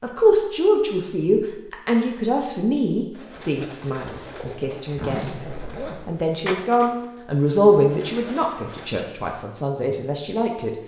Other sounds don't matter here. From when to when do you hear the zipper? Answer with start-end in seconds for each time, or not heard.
5.0-6.1.